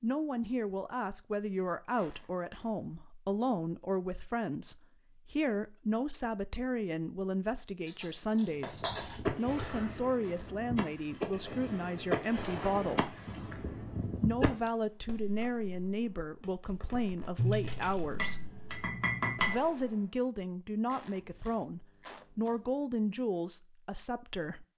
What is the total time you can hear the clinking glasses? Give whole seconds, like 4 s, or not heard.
4 s.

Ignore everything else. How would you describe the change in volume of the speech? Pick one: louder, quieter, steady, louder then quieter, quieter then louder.
steady.